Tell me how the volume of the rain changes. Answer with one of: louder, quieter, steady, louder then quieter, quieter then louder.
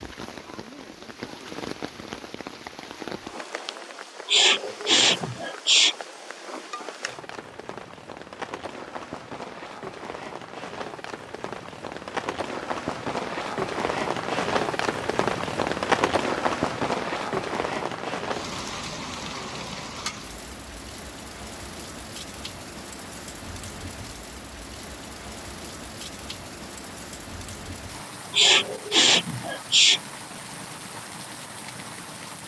louder then quieter.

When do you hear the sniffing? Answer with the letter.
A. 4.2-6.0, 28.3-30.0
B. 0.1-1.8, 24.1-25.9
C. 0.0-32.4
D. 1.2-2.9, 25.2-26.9
A.